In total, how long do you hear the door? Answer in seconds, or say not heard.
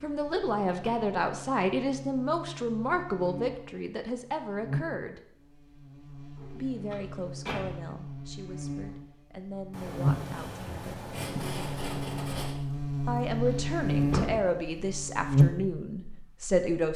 3 s.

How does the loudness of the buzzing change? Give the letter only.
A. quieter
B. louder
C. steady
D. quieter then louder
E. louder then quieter
B.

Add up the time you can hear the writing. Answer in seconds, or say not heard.
3 s.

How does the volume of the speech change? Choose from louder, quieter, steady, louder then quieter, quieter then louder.
quieter then louder.